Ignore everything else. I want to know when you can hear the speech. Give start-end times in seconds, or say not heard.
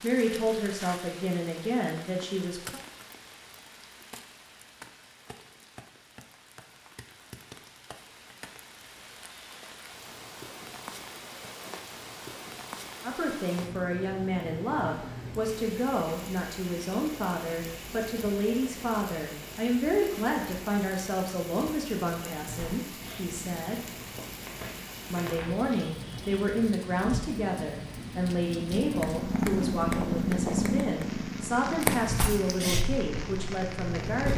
0.0-2.8, 13.0-23.8, 25.1-34.3.